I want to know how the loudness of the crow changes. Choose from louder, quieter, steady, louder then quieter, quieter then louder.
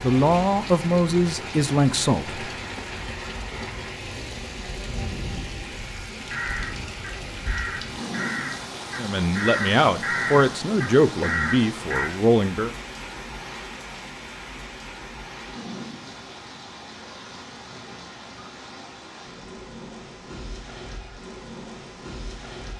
louder.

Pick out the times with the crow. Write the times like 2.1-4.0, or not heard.
6.0-12.1.